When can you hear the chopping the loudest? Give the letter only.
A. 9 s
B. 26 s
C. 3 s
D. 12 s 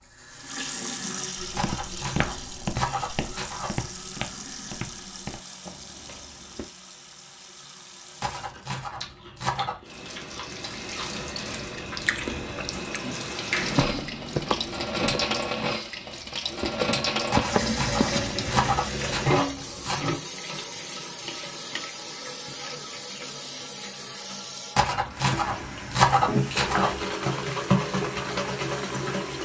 B.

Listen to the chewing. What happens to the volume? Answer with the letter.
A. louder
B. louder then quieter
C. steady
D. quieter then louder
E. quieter
A.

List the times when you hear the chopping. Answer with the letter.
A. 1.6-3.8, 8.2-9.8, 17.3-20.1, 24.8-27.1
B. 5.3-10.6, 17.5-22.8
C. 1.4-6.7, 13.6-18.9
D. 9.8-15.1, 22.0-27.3
A.